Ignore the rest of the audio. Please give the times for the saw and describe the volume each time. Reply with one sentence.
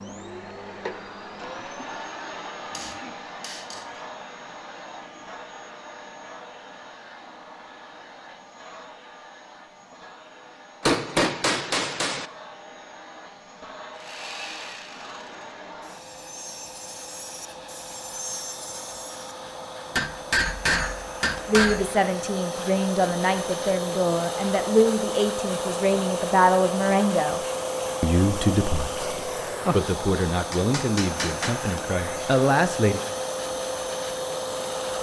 You can hear the saw from 13.9 to 19.4 s, getting quieter then louder.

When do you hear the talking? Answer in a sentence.
The talking can be heard from 21.4 to 27.4 s and from 28.0 to 33.0 s.